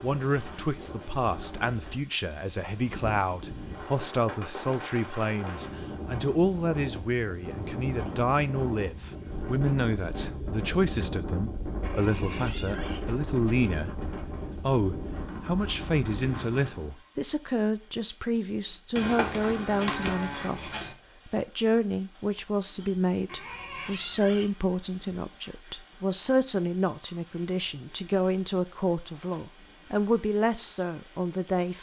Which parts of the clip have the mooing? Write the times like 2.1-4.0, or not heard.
18.9-20.9.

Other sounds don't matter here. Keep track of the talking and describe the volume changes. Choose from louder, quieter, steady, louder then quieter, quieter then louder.
steady.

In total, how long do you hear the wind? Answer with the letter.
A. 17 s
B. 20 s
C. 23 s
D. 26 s
A.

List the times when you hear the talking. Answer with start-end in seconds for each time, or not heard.
0.0-13.9, 14.6-31.7.